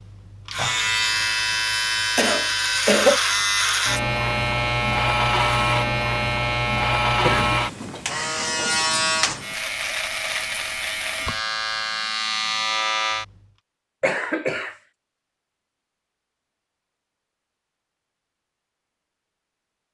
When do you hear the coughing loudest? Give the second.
3 s.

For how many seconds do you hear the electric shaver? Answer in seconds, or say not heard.
13 s.